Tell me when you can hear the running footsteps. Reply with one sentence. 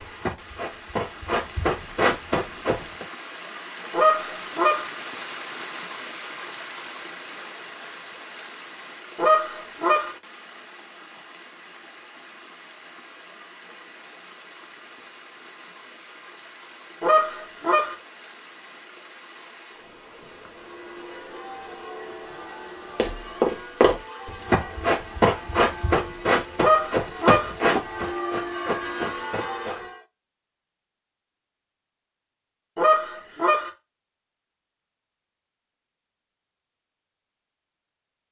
You can hear the running footsteps from 0.0 to 3.0 s and from 22.9 to 29.9 s.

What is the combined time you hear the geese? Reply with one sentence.
You can hear the geese for 5 seconds altogether.